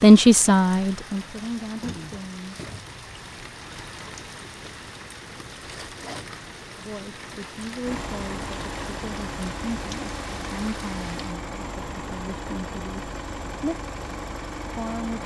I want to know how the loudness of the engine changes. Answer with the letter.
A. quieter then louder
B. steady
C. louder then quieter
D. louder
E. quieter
B.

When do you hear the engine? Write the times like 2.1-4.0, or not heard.
7.8-15.2.